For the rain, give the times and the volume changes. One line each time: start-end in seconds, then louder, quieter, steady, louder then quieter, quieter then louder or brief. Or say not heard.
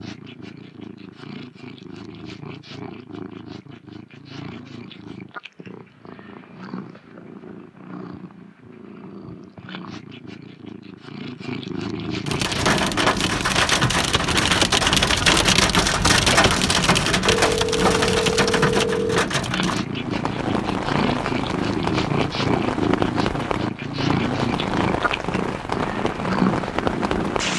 12.2-27.5 quieter.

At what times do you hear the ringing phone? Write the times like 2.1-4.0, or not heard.
17.2-19.2.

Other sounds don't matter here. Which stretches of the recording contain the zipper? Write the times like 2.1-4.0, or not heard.
not heard.